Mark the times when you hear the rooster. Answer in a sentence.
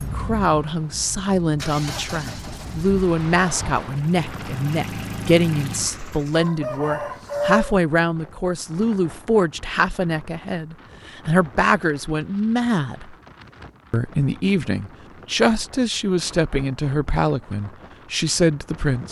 The rooster can be heard from 6.3 to 7.8 s.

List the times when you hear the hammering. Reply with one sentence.
You can't hear the hammering here.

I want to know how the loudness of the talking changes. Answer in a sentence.
The volume of the talking stays about the same.